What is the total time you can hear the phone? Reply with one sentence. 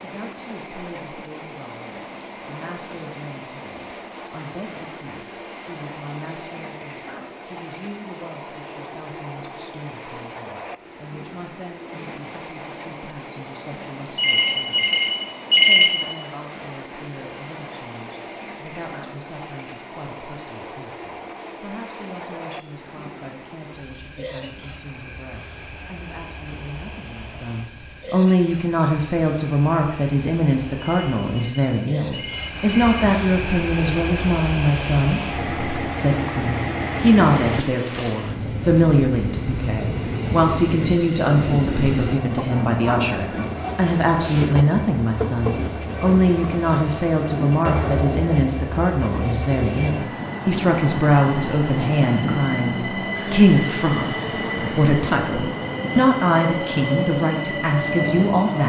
You can hear the phone for 4 seconds altogether.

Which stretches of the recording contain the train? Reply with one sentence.
The train can be heard from 0.0 to 58.6 s.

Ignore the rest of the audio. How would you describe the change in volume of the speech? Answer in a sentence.
The volume of the speech goes up.